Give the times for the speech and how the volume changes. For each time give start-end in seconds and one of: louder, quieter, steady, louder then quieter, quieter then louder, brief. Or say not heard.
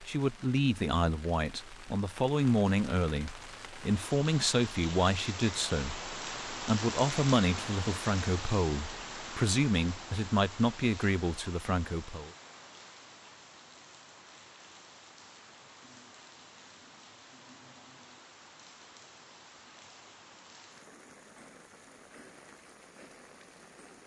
0.0-12.3 steady.